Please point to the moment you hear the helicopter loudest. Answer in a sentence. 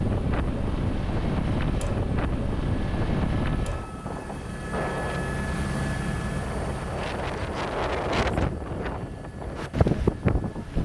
The loudest moment of the helicopter is at 6 seconds.